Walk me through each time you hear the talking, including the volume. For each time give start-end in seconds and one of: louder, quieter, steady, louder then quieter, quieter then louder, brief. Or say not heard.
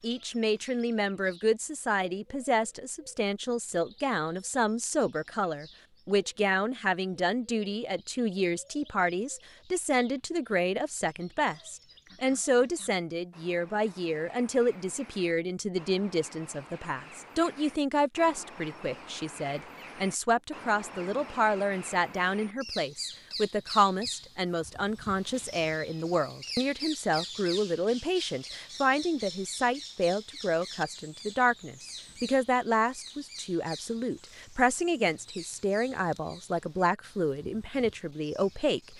0.0-38.9 steady.